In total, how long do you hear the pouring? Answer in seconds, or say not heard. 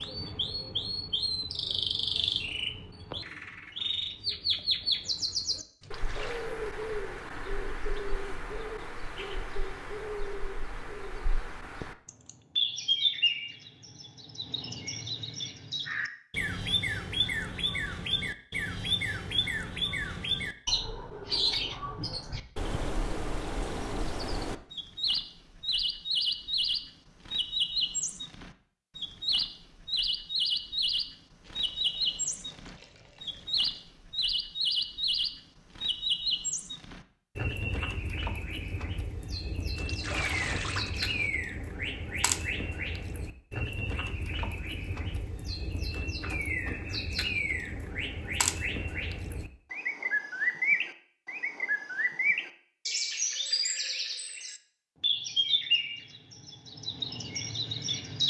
5 s.